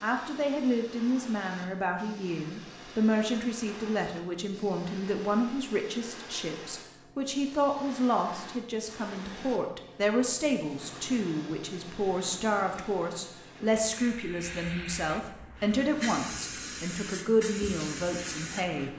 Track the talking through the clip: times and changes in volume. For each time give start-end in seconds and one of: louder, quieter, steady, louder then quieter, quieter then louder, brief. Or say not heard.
0.0-18.9 steady.